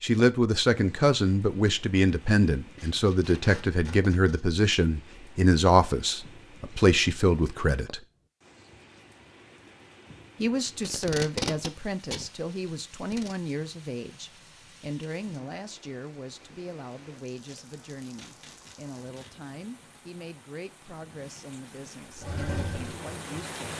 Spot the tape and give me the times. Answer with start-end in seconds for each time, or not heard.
2.8-4.5, 10.8-13.3, 17.4-19.3.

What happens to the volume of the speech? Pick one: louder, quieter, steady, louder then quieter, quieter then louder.
quieter.